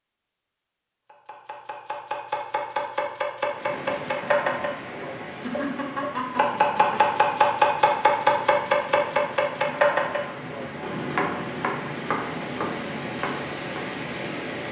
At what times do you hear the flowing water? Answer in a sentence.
You can hear the flowing water from 3.5 to 14.6 s.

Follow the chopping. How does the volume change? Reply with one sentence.
The loudness of the chopping goes up, then down.